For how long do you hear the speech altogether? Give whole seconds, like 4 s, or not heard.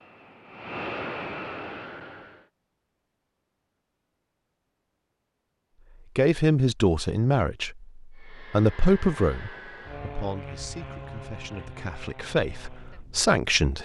8 s.